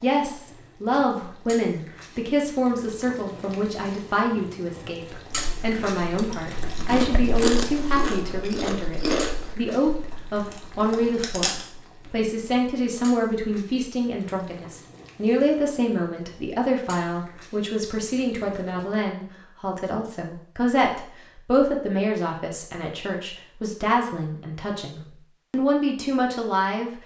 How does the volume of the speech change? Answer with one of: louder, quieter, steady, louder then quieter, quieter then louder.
steady.